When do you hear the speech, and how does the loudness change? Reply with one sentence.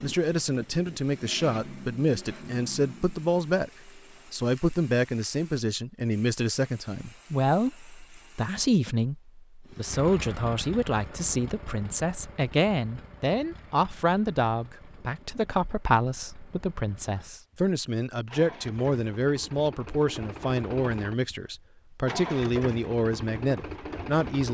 You can hear the speech from 0.0 to 24.4 s, at a steady volume.